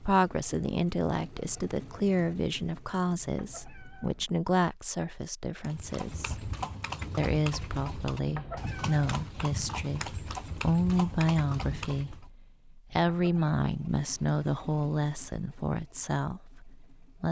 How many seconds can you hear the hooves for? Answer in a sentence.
You can hear the hooves for 7 seconds altogether.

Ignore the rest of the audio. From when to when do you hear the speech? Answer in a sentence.
You can hear the speech from 0.0 to 6.5 s and from 7.2 to 17.2 s.